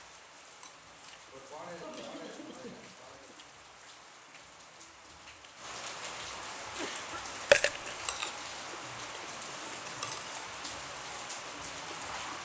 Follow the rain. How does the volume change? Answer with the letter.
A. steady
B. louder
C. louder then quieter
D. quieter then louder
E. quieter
B.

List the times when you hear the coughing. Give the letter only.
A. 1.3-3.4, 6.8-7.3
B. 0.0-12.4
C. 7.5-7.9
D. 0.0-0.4
A.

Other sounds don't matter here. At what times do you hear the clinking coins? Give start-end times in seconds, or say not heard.
7.5-7.9.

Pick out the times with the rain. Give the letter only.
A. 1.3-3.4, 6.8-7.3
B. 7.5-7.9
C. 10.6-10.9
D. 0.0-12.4
D.